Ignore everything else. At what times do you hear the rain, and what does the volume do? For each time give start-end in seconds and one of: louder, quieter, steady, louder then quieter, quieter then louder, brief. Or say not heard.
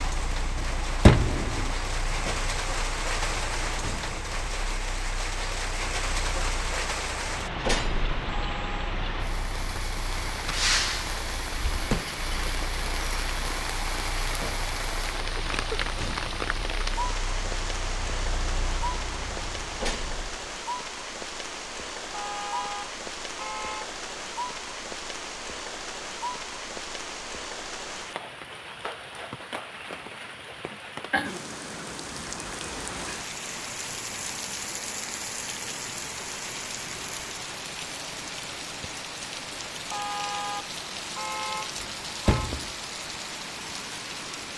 0.0-44.5 steady.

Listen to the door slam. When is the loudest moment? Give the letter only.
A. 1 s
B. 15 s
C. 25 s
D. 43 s
A.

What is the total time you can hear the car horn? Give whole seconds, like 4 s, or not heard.
5 s.